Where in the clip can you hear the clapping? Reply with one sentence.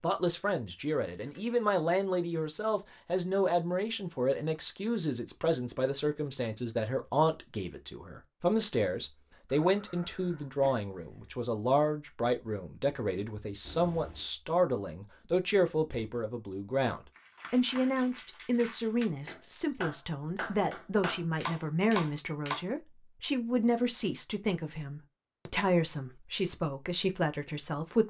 You can hear the clapping from 17.1 to 22.6 s.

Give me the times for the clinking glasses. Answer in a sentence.
The clinking glasses can't be heard in this clip.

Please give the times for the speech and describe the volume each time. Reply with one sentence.
The speech can be heard from 0.0 to 28.0 s, at a steady volume.